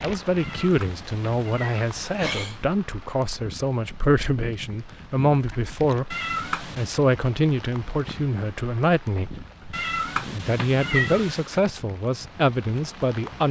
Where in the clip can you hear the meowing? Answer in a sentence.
The meowing can be heard from 0.3 to 2.7 s, from 6.1 to 6.9 s and from 9.7 to 11.6 s.